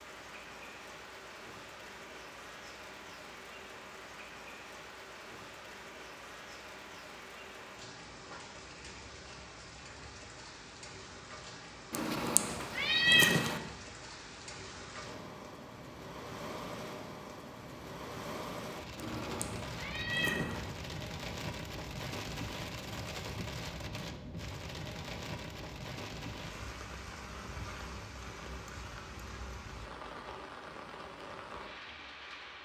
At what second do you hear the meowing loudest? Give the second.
13 s.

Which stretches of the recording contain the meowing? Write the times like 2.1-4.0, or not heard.
11.9-13.6, 18.9-20.6.